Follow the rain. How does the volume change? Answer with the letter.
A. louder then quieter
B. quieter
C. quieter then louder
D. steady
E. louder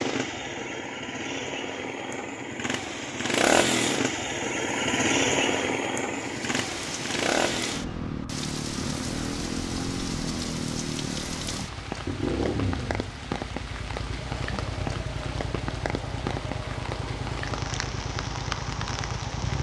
D.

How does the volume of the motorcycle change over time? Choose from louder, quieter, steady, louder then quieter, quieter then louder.
quieter.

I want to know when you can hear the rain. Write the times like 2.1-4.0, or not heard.
6.1-19.5.